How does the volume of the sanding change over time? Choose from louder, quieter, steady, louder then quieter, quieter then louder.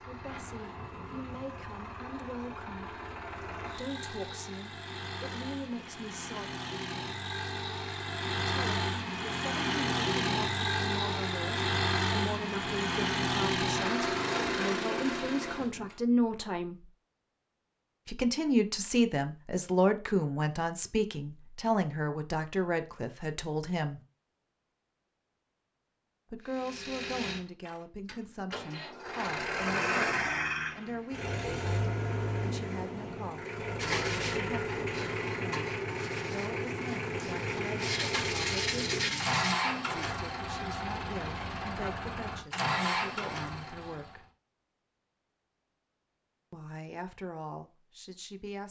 quieter then louder.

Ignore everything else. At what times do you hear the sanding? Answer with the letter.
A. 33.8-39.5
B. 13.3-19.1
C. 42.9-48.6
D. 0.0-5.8
A.